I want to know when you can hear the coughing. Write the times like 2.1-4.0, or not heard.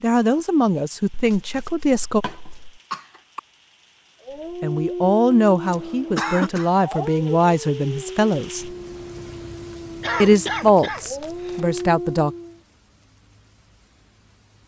2.2-3.4, 5.7-6.7, 10.0-11.7.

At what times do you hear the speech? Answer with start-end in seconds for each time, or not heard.
0.0-2.2, 4.6-8.7, 10.2-12.3.